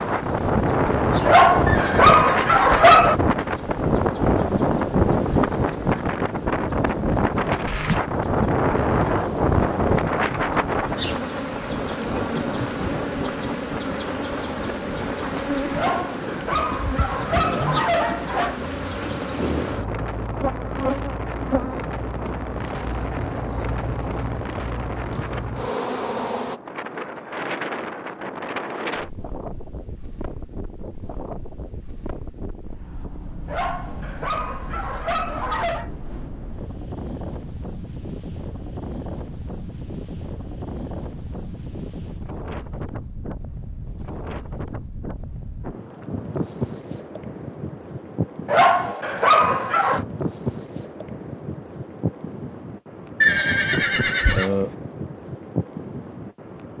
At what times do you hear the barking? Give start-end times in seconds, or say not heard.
1.2-3.1, 15.7-18.6, 33.5-35.9, 48.5-50.0.